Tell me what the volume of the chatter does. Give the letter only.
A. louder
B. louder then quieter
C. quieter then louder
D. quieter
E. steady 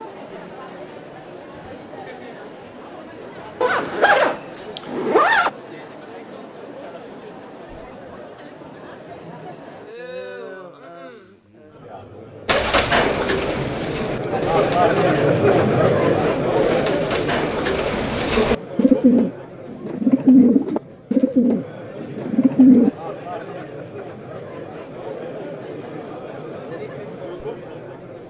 B.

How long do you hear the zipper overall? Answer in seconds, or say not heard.
2 s.